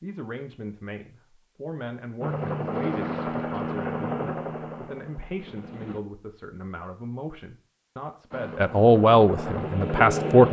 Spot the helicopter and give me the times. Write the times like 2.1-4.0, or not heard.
2.2-6.0, 8.3-10.4.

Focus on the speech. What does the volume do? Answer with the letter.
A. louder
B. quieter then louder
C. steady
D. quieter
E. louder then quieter
A.